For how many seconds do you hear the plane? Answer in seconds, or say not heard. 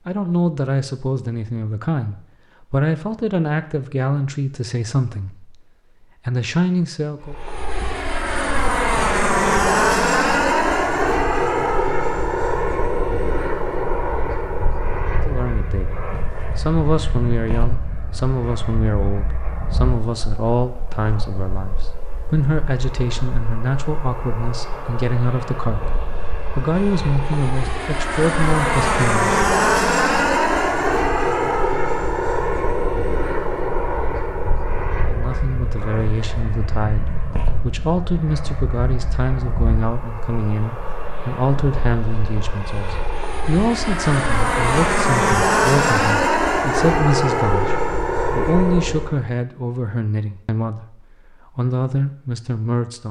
42 s.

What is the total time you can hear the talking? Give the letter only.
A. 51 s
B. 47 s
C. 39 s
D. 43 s
C.